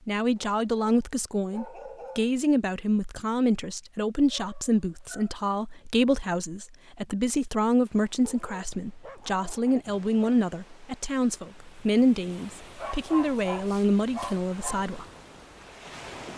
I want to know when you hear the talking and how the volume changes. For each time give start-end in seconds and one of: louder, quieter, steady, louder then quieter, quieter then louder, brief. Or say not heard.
0.1-15.1 steady.